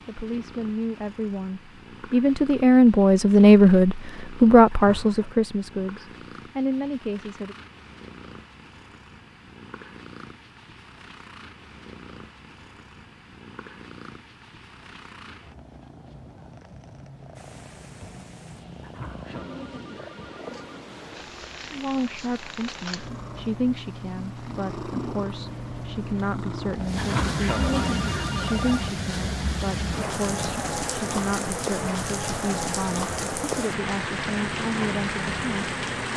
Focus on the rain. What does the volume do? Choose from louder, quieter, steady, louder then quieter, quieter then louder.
louder.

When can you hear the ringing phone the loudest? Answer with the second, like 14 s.
28 s.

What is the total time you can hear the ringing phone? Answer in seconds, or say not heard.
4 s.